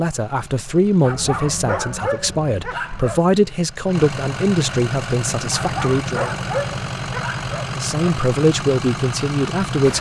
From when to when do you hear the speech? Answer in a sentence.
The speech can be heard from 0.0 to 6.3 s and from 7.8 to 9.9 s.